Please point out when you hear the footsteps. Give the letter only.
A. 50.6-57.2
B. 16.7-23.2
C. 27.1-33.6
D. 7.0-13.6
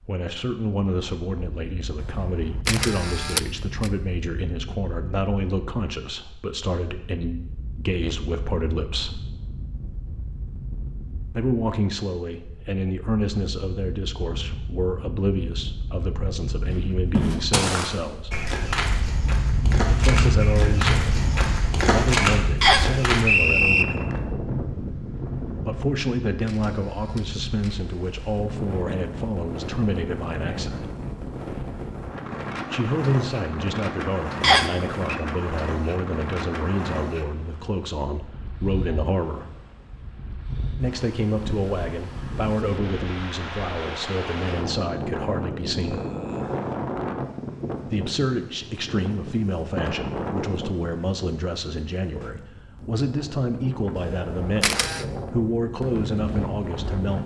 B.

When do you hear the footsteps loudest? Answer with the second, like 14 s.
22 s.